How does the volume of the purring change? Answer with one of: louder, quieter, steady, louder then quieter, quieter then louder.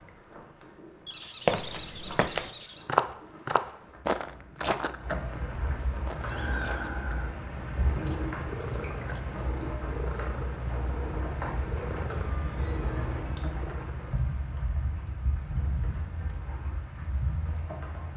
louder.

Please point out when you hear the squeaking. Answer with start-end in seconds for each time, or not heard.
1.1-2.9, 6.2-6.8, 12.2-13.2.